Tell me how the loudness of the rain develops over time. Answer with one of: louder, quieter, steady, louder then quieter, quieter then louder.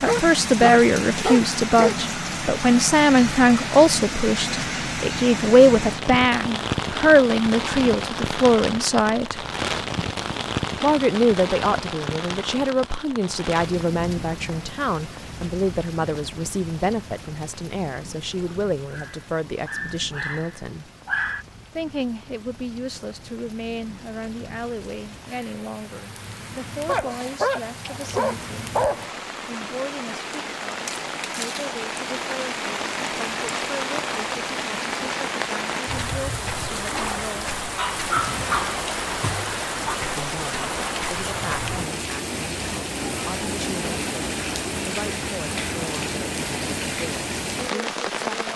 quieter then louder.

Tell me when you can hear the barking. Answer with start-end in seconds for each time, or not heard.
0.1-1.9, 18.9-21.4, 26.9-29.2, 37.5-40.0.